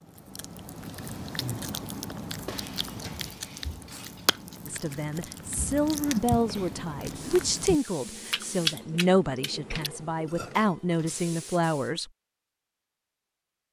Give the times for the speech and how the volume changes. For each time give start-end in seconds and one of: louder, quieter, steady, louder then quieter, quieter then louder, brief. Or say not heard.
4.7-12.1 steady.